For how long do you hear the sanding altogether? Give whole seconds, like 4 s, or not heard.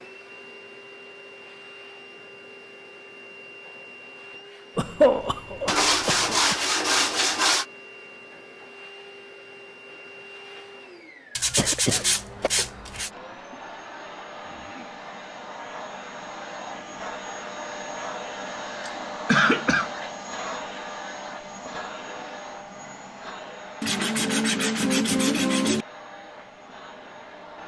6 s.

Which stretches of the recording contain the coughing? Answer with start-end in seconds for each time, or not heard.
4.8-6.5, 11.6-12.5, 18.9-19.9.